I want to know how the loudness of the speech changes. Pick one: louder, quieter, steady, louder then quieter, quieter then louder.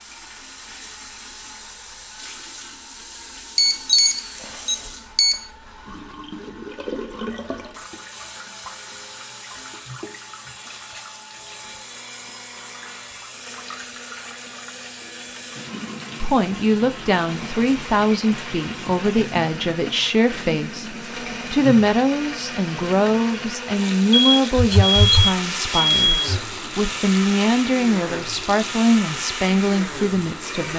steady.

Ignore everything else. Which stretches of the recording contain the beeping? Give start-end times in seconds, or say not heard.
3.5-5.5, 24.1-26.4.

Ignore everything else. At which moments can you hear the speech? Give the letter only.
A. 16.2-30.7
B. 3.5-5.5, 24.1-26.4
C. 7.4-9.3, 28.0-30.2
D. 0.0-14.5
A.